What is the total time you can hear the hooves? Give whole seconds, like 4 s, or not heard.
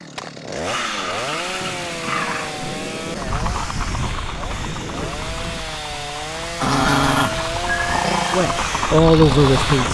7 s.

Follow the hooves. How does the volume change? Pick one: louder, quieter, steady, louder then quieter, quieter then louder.
quieter then louder.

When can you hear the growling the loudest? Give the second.
7 s.